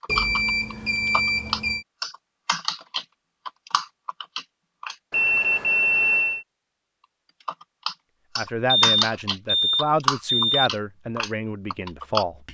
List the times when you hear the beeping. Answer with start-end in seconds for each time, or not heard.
0.1-1.9, 5.1-6.5, 8.7-10.7.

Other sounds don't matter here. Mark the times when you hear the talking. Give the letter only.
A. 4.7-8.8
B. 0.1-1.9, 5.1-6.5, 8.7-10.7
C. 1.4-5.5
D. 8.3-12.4
D.